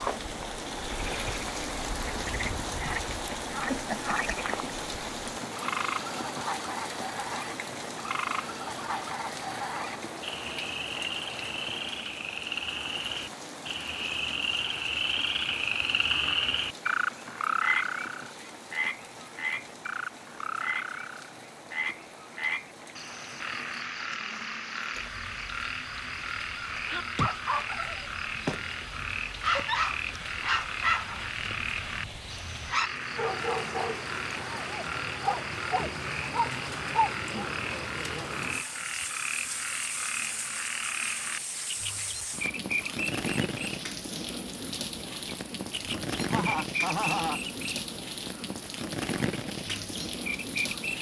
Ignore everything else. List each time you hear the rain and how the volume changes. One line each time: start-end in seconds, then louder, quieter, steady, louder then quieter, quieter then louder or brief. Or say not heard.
0.0-50.9 quieter then louder.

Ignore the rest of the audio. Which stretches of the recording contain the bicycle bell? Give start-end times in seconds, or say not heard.
not heard.